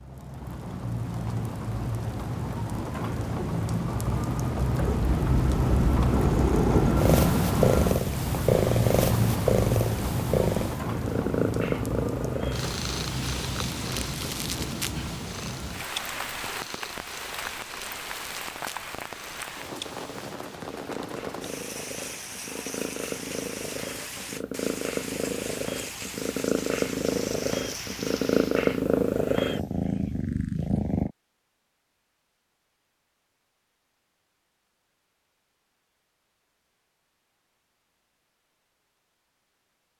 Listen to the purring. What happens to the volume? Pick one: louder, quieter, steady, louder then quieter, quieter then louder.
quieter then louder.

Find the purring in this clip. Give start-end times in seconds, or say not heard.
4.8-31.1.